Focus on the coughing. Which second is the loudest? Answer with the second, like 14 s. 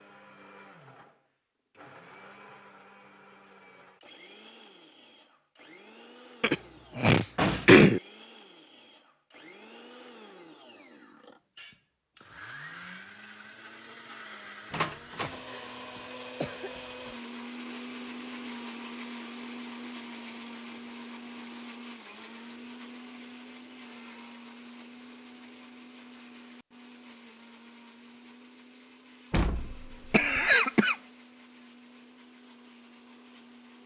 8 s.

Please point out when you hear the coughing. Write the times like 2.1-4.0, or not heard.
6.4-8.0, 15.2-17.1, 30.1-30.9.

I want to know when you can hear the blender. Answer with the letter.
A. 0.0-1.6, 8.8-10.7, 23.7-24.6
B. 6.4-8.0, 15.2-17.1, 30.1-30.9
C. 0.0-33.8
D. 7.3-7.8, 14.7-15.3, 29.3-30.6
C.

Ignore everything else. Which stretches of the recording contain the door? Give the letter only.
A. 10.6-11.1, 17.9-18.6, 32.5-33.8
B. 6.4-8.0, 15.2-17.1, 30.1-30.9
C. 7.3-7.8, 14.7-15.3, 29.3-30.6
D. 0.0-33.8
C.